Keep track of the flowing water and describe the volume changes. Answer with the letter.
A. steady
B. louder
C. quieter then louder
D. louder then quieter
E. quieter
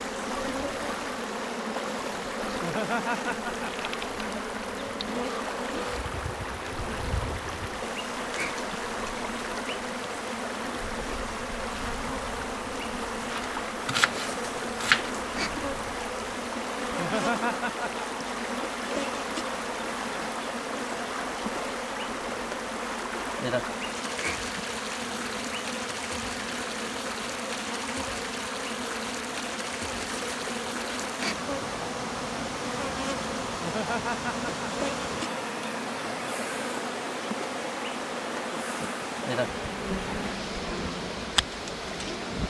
A.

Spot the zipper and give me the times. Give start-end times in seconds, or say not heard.
not heard.